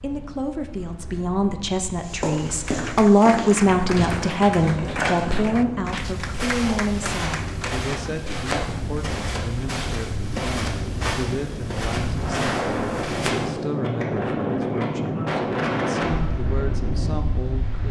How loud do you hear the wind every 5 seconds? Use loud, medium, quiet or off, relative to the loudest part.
quiet, medium, loud, loud.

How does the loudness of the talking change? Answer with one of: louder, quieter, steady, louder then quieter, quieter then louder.
quieter.